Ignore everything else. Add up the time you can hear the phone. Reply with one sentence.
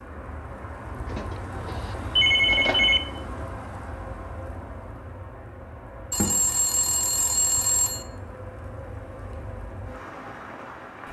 The phone can be heard for 4 seconds in total.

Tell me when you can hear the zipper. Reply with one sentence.
The zipper can't be heard in this clip.